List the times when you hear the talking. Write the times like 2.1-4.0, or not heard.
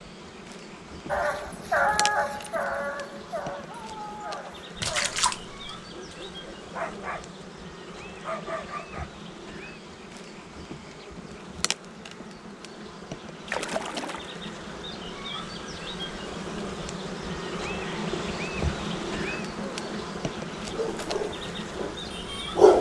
not heard.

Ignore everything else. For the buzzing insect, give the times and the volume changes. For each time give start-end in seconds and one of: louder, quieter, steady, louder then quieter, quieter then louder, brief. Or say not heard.
0.0-22.7 louder.